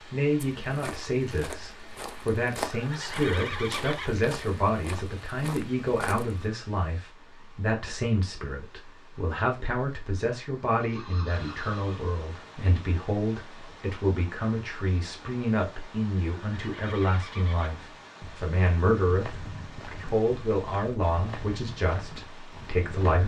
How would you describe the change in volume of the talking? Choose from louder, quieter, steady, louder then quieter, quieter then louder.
steady.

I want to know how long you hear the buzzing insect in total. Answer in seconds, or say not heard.
not heard.